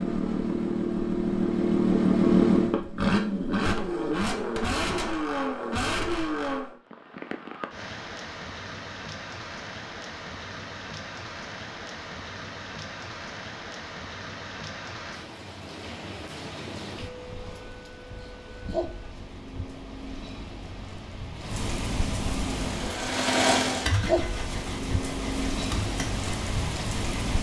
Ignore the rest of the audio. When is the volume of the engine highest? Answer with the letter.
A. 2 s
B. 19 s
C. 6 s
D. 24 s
A.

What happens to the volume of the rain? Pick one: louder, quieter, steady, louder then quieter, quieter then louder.
louder.